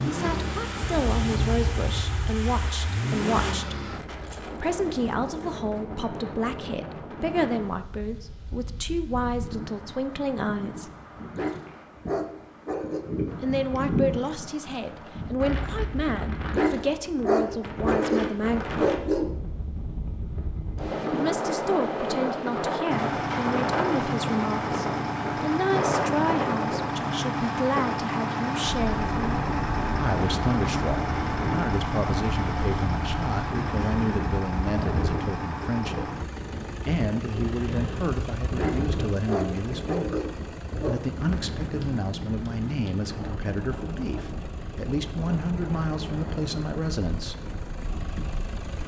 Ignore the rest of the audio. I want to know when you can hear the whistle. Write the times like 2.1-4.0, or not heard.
not heard.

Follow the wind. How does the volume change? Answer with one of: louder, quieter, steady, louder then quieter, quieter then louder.
louder then quieter.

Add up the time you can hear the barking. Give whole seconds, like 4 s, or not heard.
7 s.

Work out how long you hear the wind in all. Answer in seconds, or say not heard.
49 s.